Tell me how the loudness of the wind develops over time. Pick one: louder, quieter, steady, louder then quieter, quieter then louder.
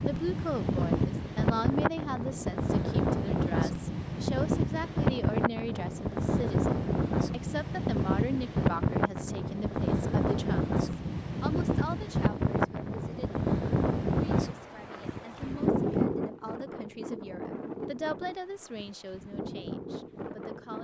quieter.